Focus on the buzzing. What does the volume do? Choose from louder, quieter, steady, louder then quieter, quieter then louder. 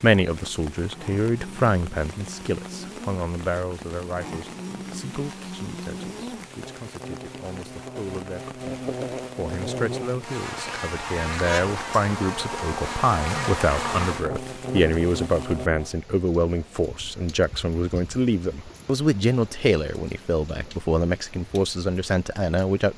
louder.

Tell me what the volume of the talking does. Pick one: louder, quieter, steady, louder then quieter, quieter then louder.
quieter then louder.